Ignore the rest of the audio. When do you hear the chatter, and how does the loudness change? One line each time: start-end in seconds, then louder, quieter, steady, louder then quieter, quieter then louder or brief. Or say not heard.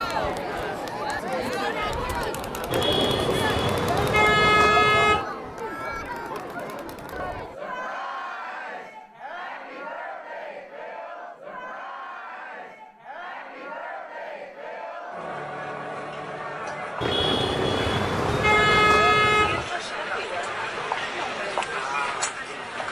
0.0-22.8 quieter then louder.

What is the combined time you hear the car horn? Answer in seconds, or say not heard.
5 s.